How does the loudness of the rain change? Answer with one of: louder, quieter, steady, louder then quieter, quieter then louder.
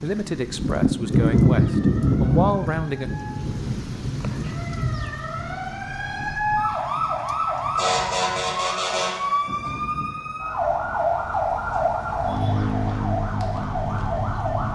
quieter.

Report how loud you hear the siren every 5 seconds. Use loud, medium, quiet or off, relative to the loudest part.
quiet, loud, loud.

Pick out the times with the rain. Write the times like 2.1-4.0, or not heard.
0.0-14.7.